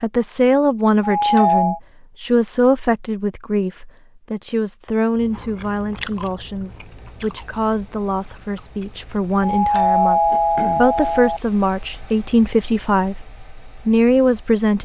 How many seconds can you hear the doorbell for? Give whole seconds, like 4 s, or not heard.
3 s.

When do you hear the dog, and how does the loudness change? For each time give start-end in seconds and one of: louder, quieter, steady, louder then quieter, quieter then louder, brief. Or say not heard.
not heard.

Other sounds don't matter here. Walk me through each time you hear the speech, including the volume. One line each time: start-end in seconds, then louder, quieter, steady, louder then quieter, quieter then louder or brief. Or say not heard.
0.0-14.8 quieter then louder.